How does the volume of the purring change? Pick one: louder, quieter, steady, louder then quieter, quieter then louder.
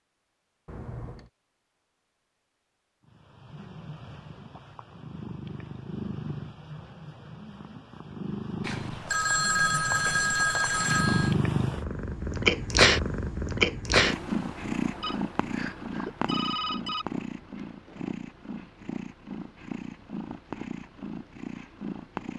louder then quieter.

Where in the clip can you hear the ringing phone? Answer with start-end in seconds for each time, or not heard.
0.7-1.3, 8.6-11.3, 15.0-17.1.